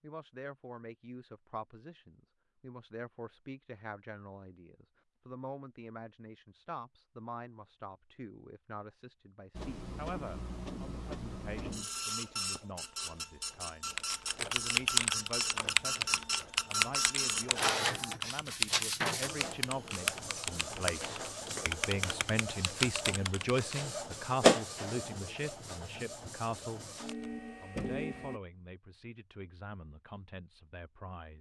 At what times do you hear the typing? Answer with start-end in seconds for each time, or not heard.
13.9-23.9.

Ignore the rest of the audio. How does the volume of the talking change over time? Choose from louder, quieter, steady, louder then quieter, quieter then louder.
louder then quieter.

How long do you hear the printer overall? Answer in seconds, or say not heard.
19 s.